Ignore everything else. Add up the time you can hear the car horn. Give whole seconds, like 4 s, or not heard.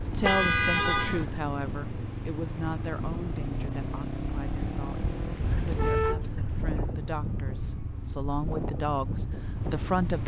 3 s.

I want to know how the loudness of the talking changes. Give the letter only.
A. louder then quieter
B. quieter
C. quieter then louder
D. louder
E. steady
C.